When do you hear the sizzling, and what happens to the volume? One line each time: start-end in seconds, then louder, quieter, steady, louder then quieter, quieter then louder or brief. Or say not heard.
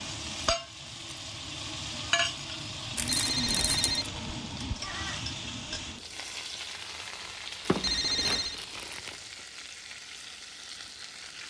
0.0-11.4 quieter.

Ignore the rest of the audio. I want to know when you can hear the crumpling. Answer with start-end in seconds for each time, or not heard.
3.0-3.9, 7.6-9.2.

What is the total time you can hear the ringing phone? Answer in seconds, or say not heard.
2 s.